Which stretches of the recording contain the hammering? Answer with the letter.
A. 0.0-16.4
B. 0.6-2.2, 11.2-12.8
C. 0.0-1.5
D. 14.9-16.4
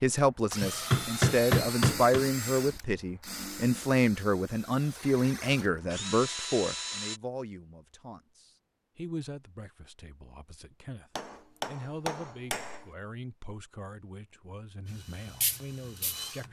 B.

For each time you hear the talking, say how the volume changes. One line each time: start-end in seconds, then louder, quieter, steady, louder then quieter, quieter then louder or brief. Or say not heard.
0.0-16.4 quieter.